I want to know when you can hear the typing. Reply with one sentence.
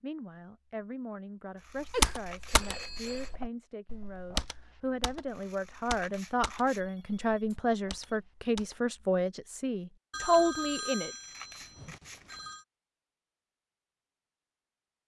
The typing can be heard from 1.9 to 8.8 s.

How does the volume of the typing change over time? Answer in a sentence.
The volume of the typing goes down.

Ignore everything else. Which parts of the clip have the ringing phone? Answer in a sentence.
You can hear the ringing phone from 1.9 to 3.3 s, from 6.8 to 8.2 s and from 10.1 to 12.7 s.